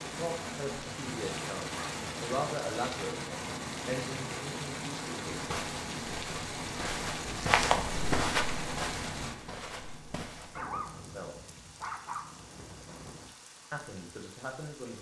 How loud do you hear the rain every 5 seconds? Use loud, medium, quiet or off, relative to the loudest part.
loud, loud, quiet.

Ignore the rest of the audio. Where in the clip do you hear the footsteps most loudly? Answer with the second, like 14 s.
8 s.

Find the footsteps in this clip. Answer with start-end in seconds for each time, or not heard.
5.3-10.7.